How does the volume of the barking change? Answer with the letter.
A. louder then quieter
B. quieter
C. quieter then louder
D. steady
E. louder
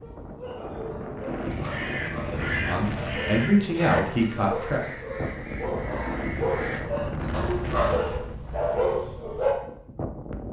E.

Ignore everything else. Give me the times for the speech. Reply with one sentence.
The speech can be heard from 2.6 to 4.8 s.